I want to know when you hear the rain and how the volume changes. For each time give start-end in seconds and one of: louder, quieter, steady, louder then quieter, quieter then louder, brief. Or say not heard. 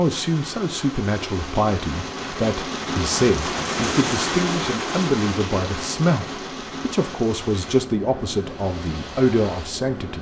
0.0-10.1 louder then quieter.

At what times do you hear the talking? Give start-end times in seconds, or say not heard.
0.0-10.1.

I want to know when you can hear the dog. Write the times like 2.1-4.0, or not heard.
not heard.